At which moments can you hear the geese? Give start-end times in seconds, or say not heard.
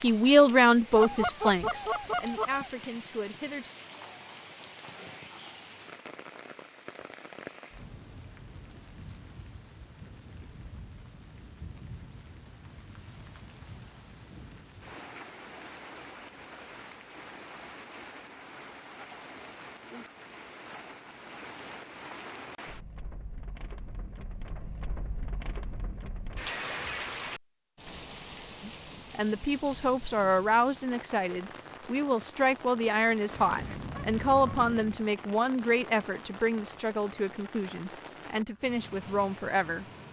0.9-2.7, 33.3-35.1.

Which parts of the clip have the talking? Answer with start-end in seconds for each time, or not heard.
0.0-3.7, 28.6-39.9.